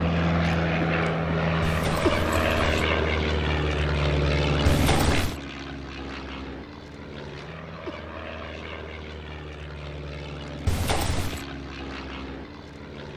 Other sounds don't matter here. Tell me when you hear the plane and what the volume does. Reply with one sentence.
The plane can be heard from 0.0 to 13.1 s, getting quieter.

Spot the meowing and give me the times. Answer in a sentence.
The meowing can be heard from 1.6 to 2.9 s, from 4.7 to 5.4 s and from 10.7 to 11.4 s.